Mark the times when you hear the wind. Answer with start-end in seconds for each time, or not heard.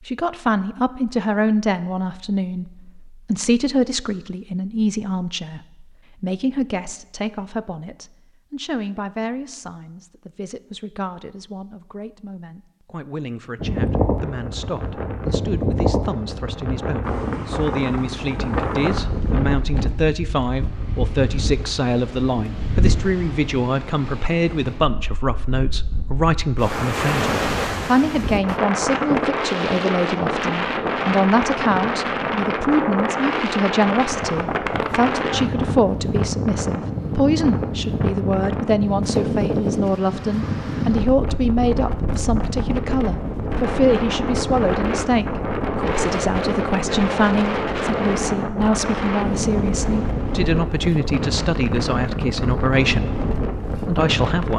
13.6-54.5.